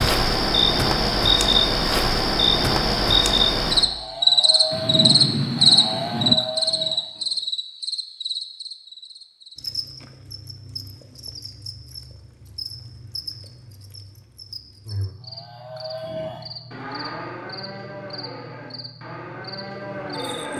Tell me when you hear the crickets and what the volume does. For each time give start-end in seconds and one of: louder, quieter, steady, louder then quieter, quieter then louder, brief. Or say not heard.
0.0-20.5 quieter.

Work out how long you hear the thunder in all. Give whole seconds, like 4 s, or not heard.
2 s.